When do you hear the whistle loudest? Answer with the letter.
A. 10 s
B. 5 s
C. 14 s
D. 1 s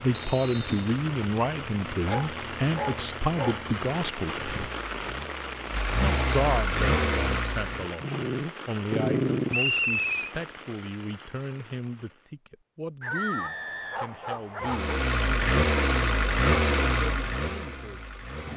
A.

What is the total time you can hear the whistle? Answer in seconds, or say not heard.
3 s.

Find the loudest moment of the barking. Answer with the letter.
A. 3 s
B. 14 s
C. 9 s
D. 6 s
C.